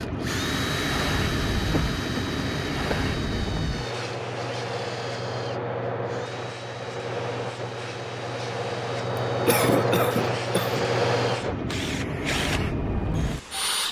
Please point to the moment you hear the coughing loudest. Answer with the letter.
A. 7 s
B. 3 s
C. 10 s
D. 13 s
C.